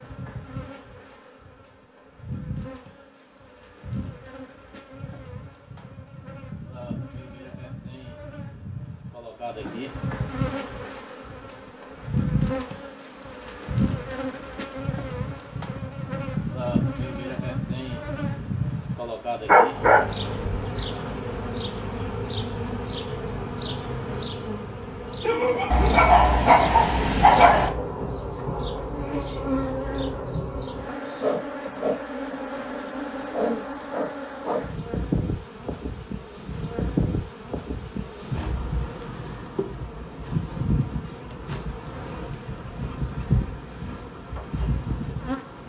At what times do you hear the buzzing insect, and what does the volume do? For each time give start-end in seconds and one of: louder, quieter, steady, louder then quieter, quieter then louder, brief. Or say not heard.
0.0-45.6 louder.